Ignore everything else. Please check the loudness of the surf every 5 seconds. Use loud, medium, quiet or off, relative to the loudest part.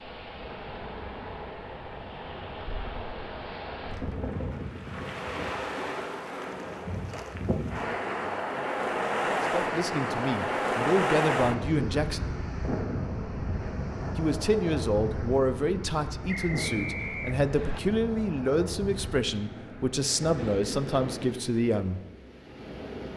medium, loud, loud, medium, medium.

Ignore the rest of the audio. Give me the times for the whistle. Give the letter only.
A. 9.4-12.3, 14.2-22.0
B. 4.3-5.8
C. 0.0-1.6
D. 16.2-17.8
D.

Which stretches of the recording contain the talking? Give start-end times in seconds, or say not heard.
9.4-12.3, 14.2-22.0.